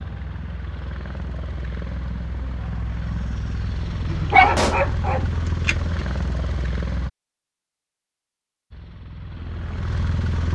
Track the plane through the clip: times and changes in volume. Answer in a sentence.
The plane can be heard from 0.0 to 7.1 s, getting louder; and briefly from 8.7 to 10.5 s.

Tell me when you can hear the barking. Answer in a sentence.
You can hear the barking from 4.0 to 6.0 s.